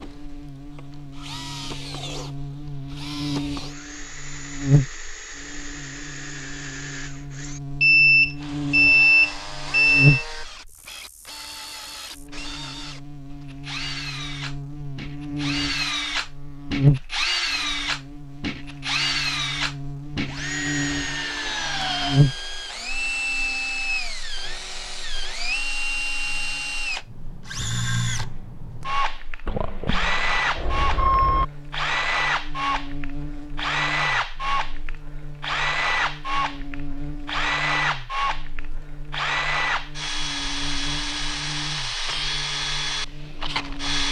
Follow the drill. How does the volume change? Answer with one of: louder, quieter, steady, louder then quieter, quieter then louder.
louder.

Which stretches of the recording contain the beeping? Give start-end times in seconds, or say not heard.
7.8-10.2, 29.4-31.4.